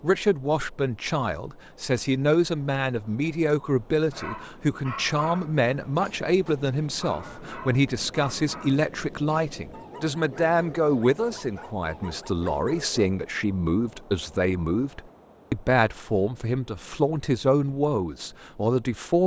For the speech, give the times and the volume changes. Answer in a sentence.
The speech can be heard from 0.0 to 19.2 s, at a steady volume.